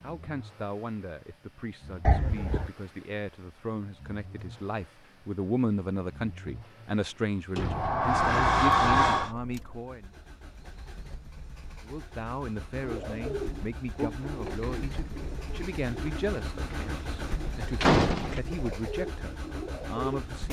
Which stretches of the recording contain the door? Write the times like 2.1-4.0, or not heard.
2.0-2.7, 7.5-9.3, 17.8-18.4.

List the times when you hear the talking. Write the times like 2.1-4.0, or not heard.
0.0-10.1, 11.8-20.4.